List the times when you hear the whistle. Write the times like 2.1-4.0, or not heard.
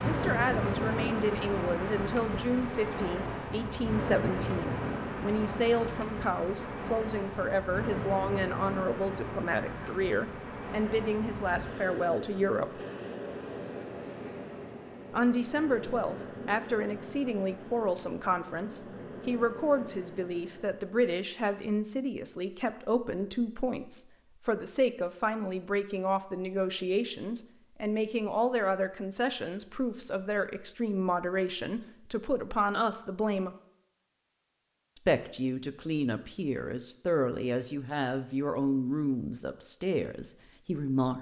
not heard.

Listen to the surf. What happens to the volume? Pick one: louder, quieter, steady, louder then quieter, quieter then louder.
quieter.